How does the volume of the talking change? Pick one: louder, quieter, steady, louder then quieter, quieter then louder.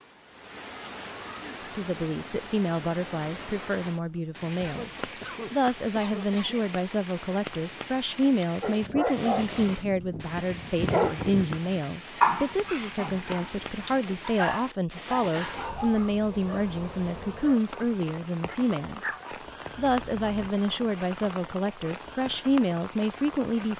steady.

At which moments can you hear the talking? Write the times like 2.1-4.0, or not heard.
1.4-4.9, 5.5-19.0, 19.8-23.7.